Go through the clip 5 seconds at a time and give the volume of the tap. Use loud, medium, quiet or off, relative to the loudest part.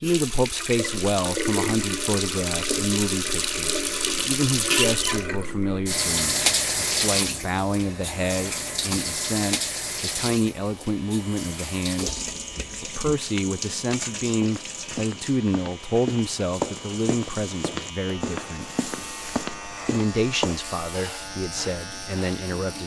loud, loud, medium, quiet, quiet.